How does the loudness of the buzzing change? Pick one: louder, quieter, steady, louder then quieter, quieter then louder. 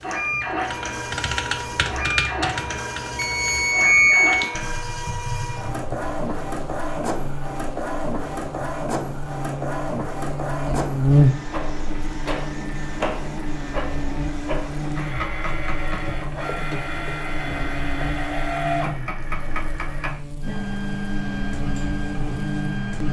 louder then quieter.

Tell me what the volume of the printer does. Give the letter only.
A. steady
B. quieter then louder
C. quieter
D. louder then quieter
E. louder
A.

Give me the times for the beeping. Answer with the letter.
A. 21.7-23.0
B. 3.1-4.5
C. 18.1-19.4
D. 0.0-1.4
B.